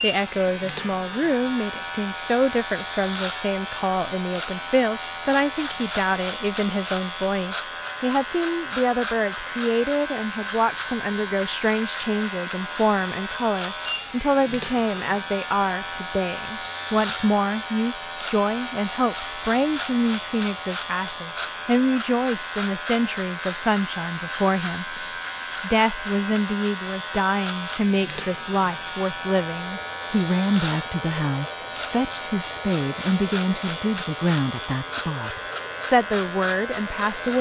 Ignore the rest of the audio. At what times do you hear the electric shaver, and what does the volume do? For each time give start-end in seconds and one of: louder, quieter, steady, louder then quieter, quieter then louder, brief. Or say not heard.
0.0-37.3 steady.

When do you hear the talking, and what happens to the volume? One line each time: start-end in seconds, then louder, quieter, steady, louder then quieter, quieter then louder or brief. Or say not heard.
0.0-37.3 steady.